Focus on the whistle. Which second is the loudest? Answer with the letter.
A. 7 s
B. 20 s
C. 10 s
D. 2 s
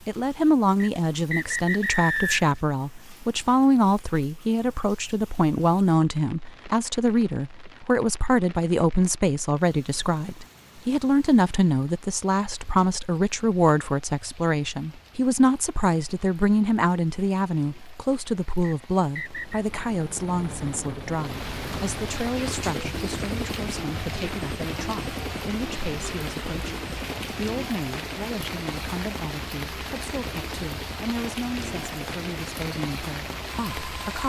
D.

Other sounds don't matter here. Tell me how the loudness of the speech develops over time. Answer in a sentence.
The volume of the speech goes down.